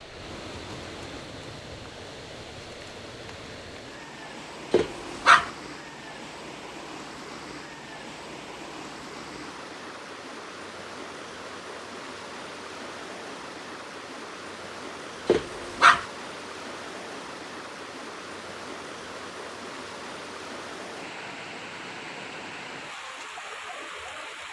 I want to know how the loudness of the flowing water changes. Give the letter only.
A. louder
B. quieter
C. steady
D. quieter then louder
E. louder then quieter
C.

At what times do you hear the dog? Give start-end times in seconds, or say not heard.
4.7-5.5, 15.2-16.1.